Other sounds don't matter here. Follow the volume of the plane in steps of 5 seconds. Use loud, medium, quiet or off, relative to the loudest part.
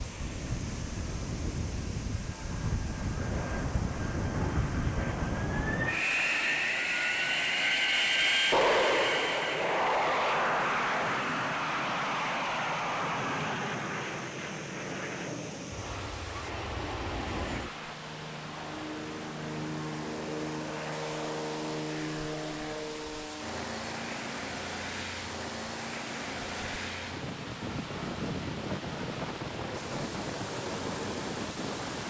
medium, loud, loud, medium, medium, medium, medium.